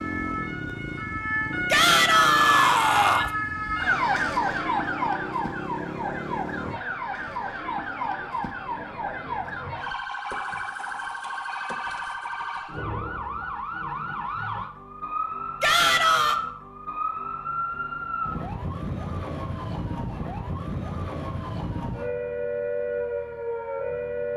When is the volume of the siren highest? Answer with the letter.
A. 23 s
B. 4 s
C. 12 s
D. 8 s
B.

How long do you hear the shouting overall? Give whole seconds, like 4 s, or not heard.
2 s.